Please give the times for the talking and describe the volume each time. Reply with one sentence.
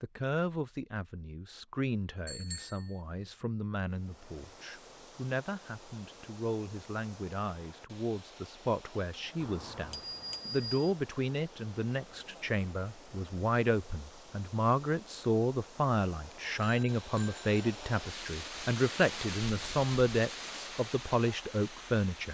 You can hear the talking from 0.0 to 22.2 s, getting louder.